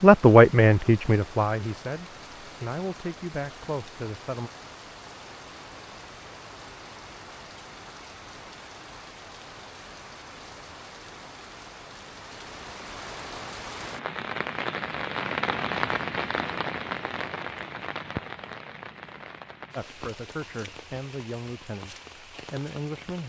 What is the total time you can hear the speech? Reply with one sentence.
You can hear the speech for 8 seconds altogether.